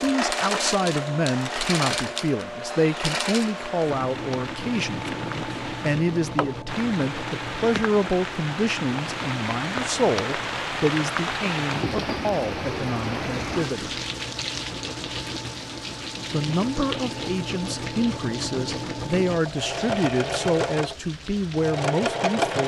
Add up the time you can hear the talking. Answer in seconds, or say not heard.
20 s.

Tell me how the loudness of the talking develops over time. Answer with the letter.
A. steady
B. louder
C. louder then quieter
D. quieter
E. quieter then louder
A.